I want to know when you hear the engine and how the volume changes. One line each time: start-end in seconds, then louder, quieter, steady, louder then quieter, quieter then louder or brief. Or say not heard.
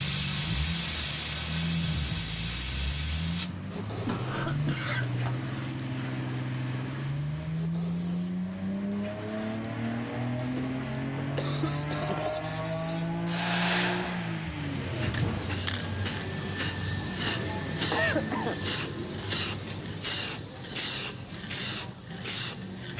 0.0-15.7 steady.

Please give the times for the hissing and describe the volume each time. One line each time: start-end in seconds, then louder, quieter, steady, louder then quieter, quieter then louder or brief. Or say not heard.
0.0-22.9 quieter then louder.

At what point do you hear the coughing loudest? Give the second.
18 s.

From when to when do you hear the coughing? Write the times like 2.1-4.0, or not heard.
4.0-5.4, 10.4-12.2, 17.9-18.6.